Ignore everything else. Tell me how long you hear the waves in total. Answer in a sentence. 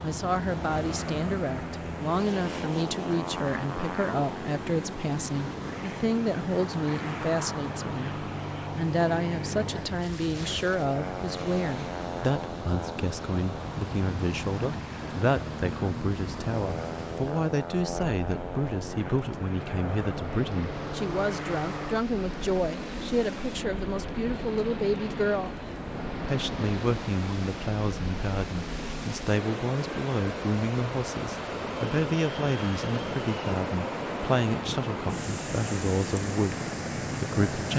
The waves can be heard for 38 seconds in total.